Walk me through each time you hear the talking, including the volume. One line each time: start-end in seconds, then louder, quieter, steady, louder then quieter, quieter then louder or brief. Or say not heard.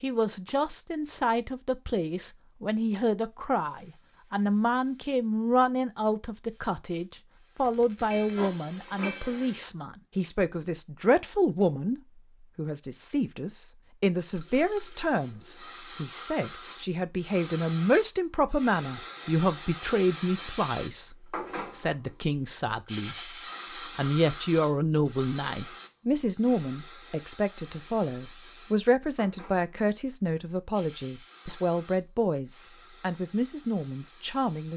0.0-34.7 steady.